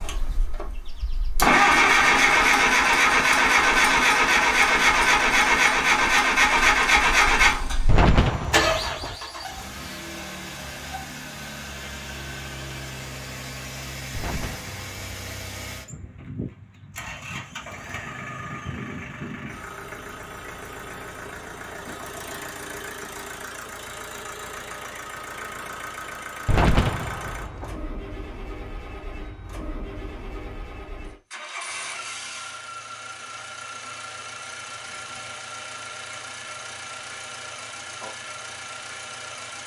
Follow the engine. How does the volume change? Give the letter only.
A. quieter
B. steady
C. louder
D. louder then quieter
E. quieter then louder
A.